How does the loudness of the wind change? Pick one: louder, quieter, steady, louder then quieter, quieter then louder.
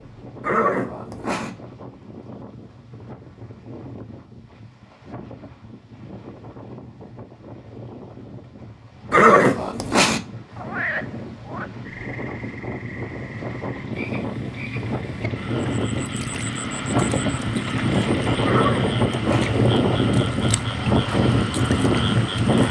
louder.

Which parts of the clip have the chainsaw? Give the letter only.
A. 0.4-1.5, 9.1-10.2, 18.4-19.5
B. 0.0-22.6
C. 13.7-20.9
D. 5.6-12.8
C.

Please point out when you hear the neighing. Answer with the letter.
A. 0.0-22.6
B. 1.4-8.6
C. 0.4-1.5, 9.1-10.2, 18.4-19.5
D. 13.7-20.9
C.